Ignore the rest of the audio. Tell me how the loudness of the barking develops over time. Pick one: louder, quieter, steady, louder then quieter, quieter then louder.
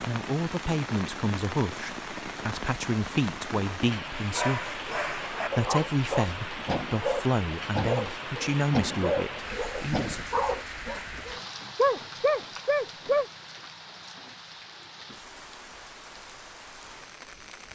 louder.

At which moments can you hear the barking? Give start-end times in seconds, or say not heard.
4.2-13.2.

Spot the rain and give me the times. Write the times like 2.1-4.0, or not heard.
0.0-17.7.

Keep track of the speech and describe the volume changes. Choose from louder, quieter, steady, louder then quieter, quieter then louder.
steady.